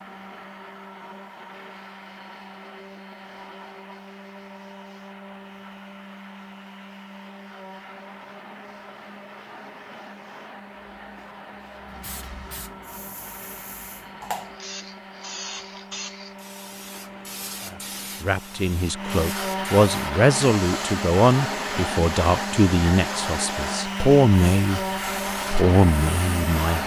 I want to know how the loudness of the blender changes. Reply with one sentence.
The loudness of the blender goes up.